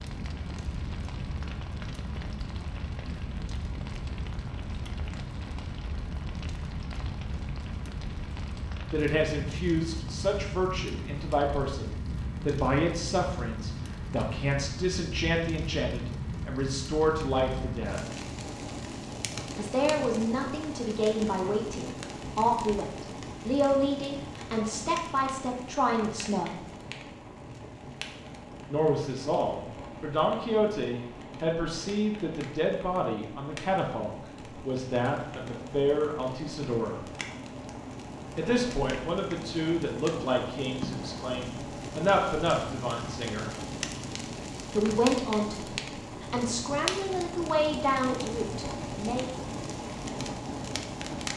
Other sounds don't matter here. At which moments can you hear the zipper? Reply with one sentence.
You can't hear the zipper here.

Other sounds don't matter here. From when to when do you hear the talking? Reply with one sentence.
The talking can be heard from 8.9 to 18.1 s, from 19.6 to 26.6 s, from 28.6 to 37.0 s, from 38.4 to 43.5 s and from 44.7 to 49.3 s.